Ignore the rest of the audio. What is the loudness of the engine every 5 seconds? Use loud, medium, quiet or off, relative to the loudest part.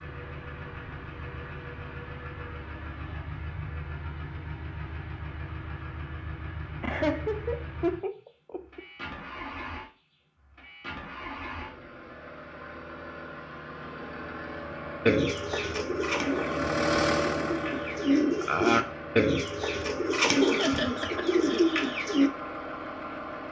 medium, medium, medium, loud, medium.